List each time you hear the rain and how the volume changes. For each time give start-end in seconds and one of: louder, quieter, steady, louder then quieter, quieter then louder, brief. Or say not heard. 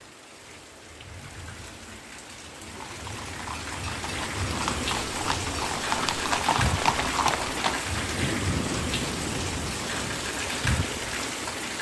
0.0-11.7 louder.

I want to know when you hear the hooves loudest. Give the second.
7 s.